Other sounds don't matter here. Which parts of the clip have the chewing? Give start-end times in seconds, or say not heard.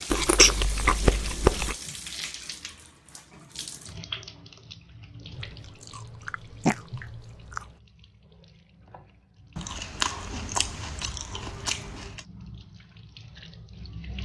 0.1-1.8, 5.3-7.7, 9.6-12.2.